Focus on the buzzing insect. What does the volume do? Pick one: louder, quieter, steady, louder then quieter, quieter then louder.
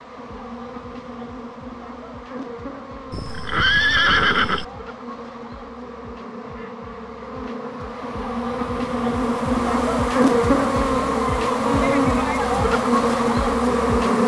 louder.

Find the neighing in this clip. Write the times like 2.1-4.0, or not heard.
3.1-4.7.